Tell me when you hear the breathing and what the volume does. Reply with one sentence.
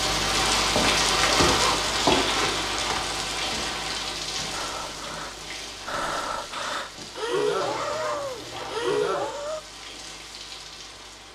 You can hear the breathing from 4.5 to 9.6 s, getting louder.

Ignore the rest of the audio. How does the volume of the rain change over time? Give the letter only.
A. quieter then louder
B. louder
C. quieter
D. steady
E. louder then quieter
C.